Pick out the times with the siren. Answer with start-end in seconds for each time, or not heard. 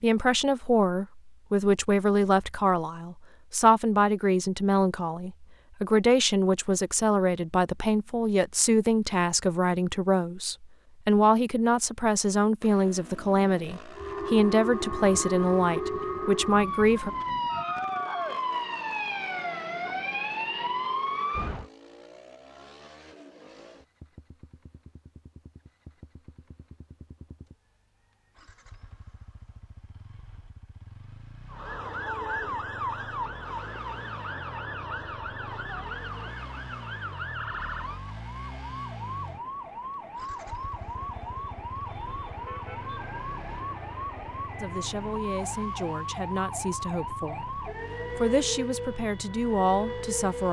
13.9-21.7, 31.5-50.4.